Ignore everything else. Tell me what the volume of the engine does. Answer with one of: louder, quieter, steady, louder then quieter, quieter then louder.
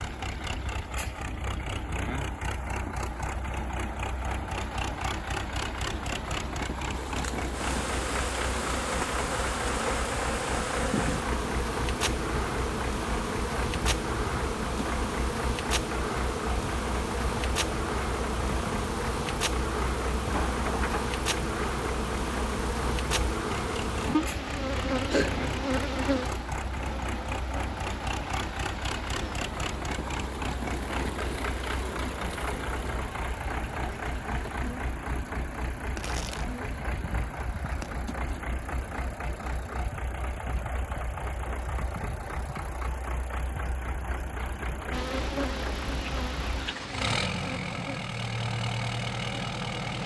steady.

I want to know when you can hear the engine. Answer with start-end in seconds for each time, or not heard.
0.0-50.0.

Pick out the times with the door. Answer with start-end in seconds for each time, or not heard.
20.3-21.1.